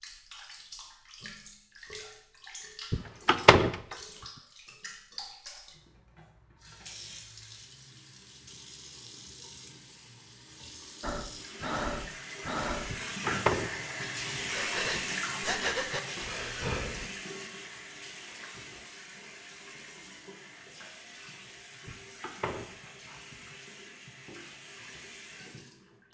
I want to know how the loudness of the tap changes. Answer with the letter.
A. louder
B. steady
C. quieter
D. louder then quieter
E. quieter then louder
D.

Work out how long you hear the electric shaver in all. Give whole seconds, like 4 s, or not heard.
not heard.